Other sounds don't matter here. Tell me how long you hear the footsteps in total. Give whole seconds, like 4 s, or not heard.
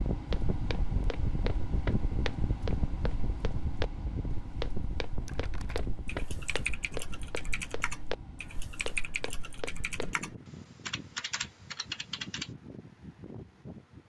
10 s.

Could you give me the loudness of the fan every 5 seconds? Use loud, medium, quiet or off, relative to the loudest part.
loud, medium, medium.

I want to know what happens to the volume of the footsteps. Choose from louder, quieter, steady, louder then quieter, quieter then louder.
steady.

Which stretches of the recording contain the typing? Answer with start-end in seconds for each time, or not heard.
5.2-12.5.